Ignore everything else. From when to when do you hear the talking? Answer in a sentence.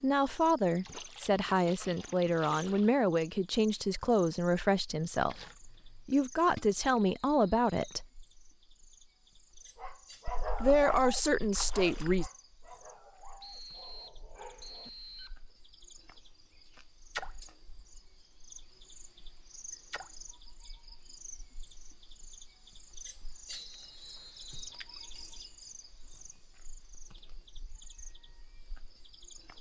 You can hear the talking from 0.0 to 8.1 s and from 10.6 to 12.2 s.